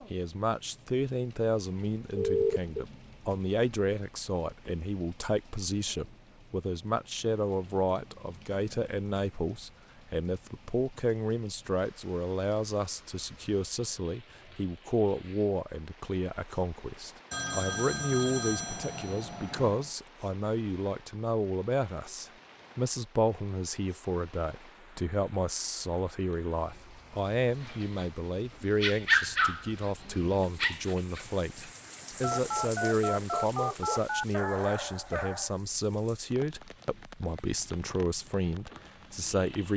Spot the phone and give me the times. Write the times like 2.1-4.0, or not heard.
2.1-2.9, 17.3-19.9, 32.2-34.4.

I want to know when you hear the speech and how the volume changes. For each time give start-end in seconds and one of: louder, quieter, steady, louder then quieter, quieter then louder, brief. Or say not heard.
0.1-39.7 steady.